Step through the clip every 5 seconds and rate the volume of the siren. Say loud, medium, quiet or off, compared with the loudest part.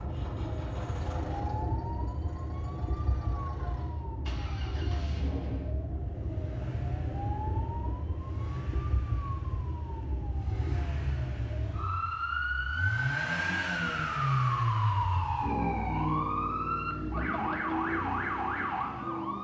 medium, medium, loud, loud.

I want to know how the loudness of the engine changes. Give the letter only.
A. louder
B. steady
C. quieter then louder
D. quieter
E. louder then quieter
A.